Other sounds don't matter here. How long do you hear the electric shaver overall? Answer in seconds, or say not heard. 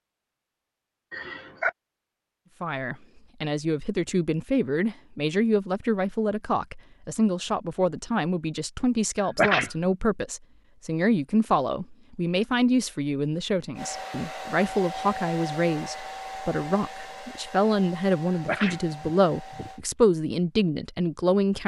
not heard.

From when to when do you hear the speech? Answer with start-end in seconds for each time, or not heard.
2.6-21.6.